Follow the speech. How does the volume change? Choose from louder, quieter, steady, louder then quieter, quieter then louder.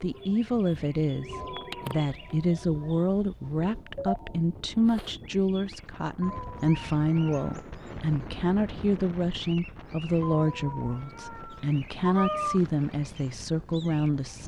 steady.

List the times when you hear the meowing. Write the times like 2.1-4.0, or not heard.
1.3-2.0, 6.2-7.7, 10.2-12.6.